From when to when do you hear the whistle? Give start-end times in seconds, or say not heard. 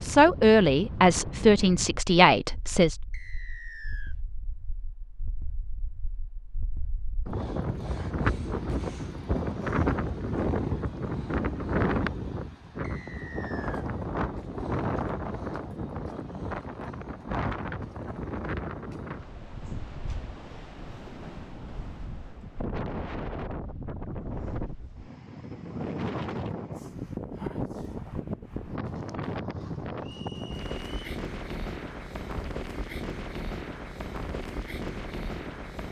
3.1-4.2, 12.8-13.8, 30.0-31.0.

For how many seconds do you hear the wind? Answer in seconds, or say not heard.
36 s.